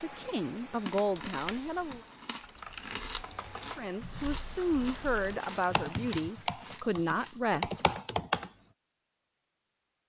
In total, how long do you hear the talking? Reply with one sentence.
You can hear the talking for 6 seconds altogether.